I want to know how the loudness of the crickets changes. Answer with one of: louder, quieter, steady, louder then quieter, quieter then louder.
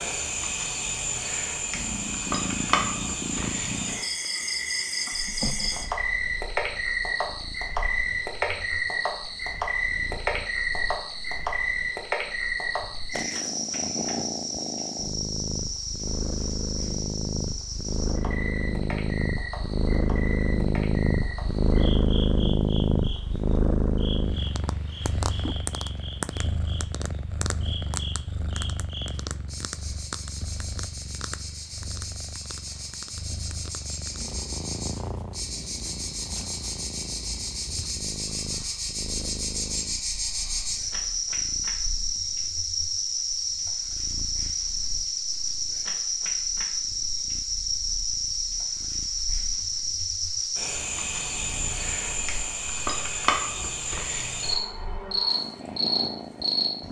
quieter then louder.